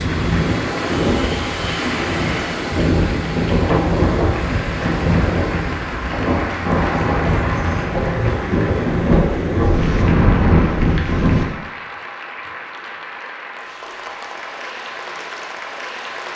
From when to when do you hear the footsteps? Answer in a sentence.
You can't hear the footsteps here.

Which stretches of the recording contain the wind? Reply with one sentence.
The wind can be heard from 0.0 to 11.4 s.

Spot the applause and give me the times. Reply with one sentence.
The applause can be heard from 0.0 to 16.3 s.